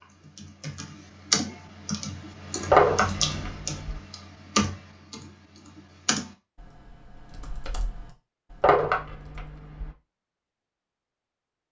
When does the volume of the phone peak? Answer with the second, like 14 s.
3 s.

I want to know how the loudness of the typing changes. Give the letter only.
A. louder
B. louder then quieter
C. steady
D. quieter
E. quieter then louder
D.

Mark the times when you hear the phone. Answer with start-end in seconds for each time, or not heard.
2.7-4.0, 8.6-9.9.